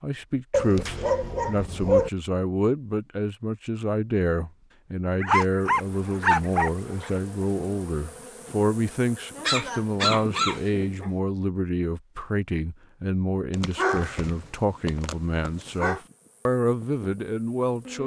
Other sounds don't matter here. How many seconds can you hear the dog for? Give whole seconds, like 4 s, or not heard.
8 s.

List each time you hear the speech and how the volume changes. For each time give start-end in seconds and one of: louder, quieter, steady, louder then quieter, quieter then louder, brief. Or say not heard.
0.0-18.0 steady.